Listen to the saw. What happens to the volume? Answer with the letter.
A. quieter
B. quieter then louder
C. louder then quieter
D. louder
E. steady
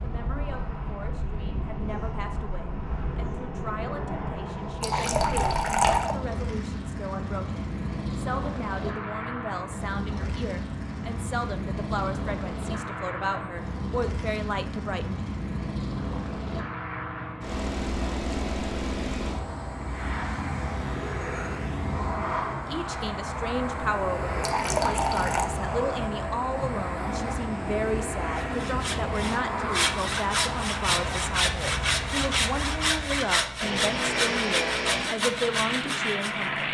E.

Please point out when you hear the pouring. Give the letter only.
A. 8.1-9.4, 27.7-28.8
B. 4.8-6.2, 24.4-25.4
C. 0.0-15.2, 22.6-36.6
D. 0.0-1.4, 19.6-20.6
B.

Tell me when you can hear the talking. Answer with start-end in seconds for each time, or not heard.
0.0-15.2, 22.6-36.6.